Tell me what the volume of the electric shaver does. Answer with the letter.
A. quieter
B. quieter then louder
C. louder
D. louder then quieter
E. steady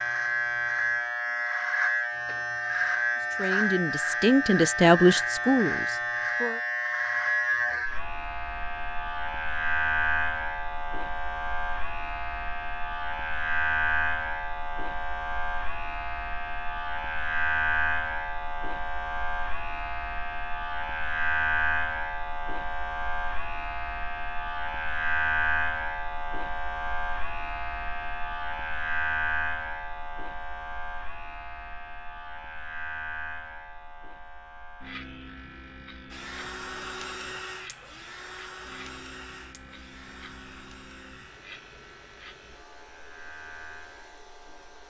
A.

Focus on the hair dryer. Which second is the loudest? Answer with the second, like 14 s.
37 s.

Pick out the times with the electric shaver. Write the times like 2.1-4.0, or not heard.
0.0-44.8.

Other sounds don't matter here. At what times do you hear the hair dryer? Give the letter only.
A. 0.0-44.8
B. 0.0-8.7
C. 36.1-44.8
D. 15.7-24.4
C.